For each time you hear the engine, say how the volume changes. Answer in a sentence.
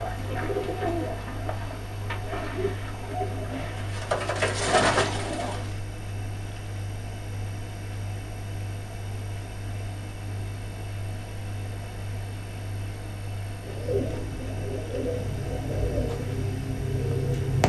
You can hear the engine from 0.0 to 17.6 s, at a steady volume.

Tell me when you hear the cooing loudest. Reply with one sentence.
The volume of the cooing peaks at 5 seconds.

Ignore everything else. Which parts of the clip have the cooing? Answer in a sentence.
The cooing can be heard from 0.0 to 5.7 s and from 13.7 to 17.6 s.